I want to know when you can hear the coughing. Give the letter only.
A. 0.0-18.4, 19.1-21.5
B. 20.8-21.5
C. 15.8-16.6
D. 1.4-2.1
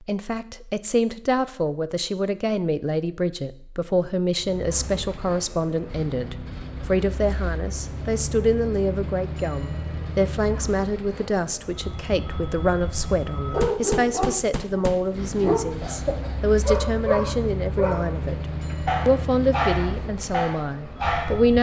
C.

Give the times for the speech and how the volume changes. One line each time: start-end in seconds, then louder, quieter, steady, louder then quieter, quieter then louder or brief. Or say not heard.
0.0-18.4 steady
19.1-21.5 brief.